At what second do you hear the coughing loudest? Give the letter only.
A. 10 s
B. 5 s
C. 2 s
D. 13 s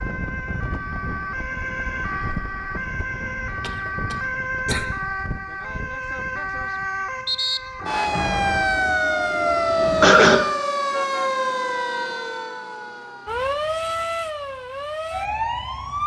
A.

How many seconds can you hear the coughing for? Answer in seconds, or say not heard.
2 s.